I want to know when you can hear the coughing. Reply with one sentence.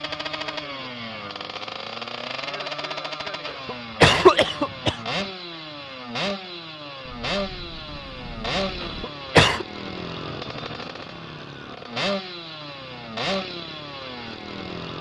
The coughing can be heard from 3.5 to 5.0 s and from 8.8 to 9.7 s.